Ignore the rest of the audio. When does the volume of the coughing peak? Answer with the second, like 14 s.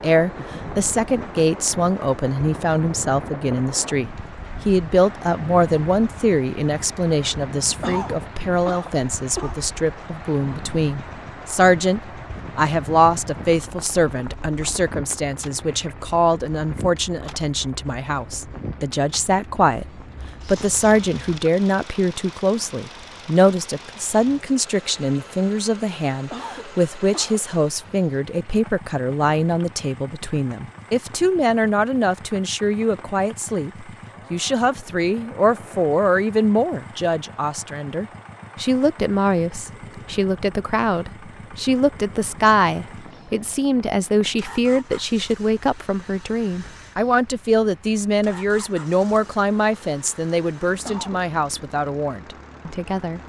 8 s.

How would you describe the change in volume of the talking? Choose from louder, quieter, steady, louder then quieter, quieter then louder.
steady.